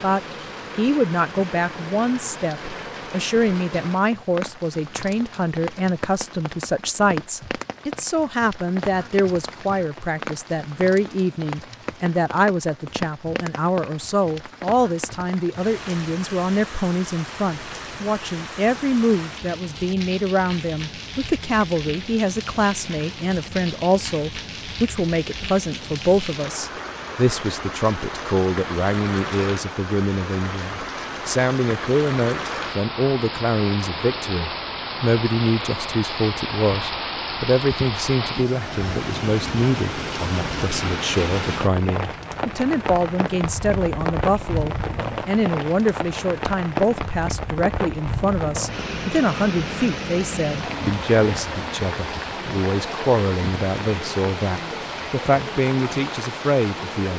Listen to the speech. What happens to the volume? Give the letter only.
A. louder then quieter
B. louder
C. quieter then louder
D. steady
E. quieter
D.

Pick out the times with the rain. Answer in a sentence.
The rain can be heard from 0.0 to 57.1 s.